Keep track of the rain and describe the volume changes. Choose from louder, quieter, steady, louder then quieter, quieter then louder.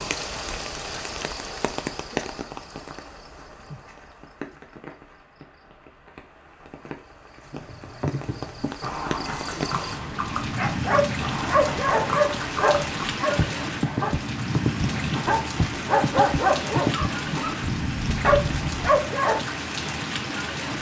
quieter then louder.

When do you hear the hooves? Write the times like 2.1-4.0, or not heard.
7.5-18.9.